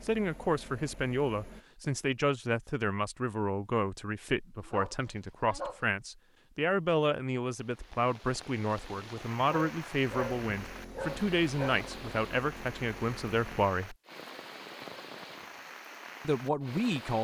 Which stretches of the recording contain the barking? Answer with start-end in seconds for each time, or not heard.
4.6-5.9, 9.4-11.9.